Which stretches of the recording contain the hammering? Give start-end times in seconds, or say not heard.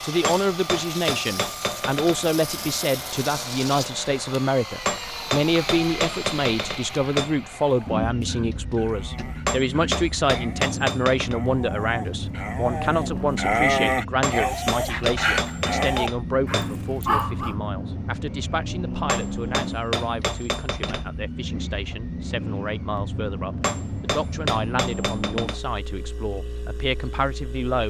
0.2-2.2, 4.8-7.3, 9.4-11.3, 14.2-16.7, 19.1-21.1, 23.6-25.6.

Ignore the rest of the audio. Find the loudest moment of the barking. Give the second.
14 s.